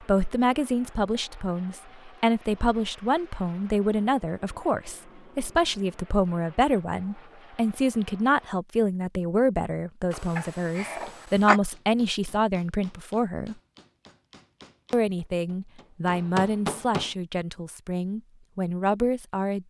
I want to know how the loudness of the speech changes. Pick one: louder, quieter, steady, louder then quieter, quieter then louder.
steady.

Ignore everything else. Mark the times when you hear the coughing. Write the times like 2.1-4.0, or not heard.
10.1-11.6.